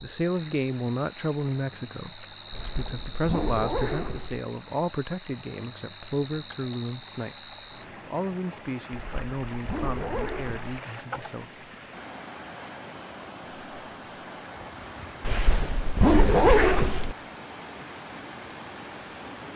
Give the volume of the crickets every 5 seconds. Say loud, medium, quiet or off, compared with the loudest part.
loud, loud, medium, medium.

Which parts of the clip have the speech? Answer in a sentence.
You can hear the speech from 0.0 to 11.5 s.